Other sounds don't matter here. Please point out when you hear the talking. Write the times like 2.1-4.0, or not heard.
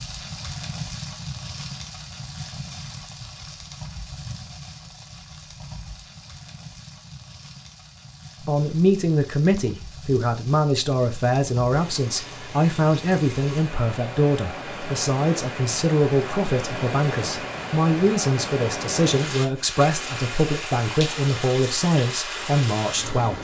8.4-23.3.